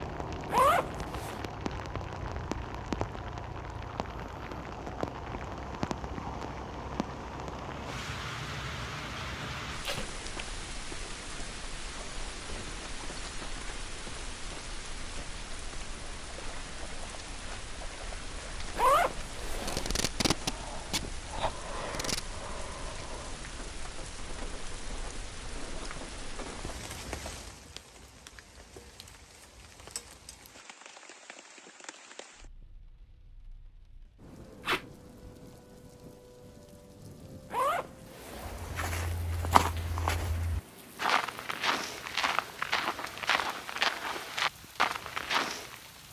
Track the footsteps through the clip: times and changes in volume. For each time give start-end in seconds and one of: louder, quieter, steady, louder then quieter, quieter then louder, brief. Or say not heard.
38.3-45.8 steady.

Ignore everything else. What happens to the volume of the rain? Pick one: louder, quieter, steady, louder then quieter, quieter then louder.
quieter.